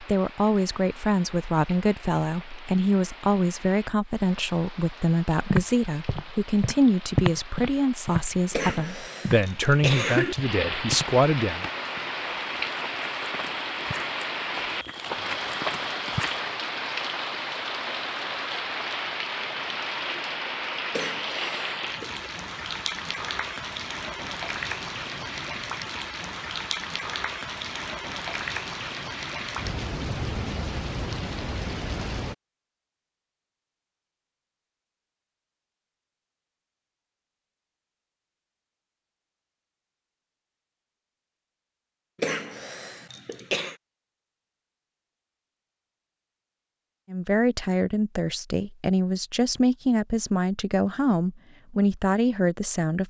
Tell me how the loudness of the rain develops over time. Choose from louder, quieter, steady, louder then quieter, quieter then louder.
louder.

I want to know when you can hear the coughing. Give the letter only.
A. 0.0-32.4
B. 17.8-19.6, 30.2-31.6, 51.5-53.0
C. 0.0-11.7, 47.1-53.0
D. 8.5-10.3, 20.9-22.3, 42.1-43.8
D.